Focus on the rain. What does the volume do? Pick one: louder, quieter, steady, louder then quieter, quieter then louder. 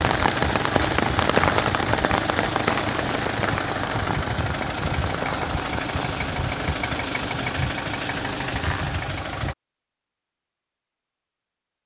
quieter.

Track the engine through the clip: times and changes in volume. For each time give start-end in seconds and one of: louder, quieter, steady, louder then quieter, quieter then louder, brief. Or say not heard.
0.0-9.6 steady.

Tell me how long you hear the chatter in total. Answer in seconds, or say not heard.
not heard.